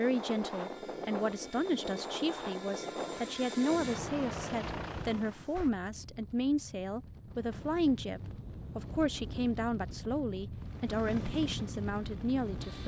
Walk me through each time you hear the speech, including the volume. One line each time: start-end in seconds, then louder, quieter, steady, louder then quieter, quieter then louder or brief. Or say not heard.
0.0-12.8 steady.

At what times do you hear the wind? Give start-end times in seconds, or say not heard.
0.0-12.8.